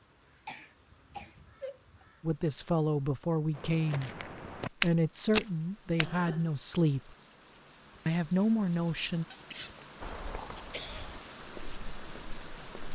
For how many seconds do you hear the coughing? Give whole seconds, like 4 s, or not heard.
4 s.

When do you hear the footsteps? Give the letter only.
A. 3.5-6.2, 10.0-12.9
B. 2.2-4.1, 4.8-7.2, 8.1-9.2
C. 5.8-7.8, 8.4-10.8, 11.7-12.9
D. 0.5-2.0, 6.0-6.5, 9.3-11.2
A.